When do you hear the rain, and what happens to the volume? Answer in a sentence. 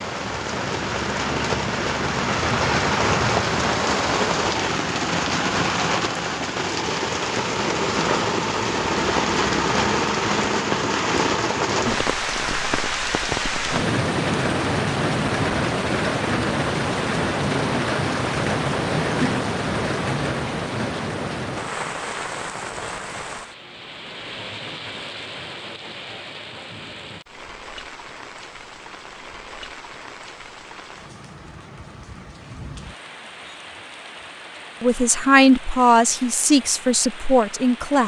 You can hear the rain from 0.0 to 38.0 s, getting quieter.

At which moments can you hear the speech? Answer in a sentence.
The speech can be heard from 34.8 to 38.0 s.